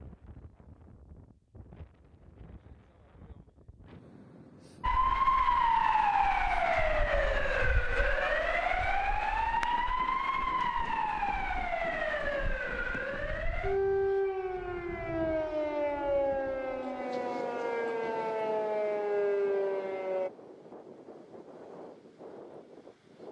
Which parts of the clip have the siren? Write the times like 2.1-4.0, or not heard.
4.8-20.3.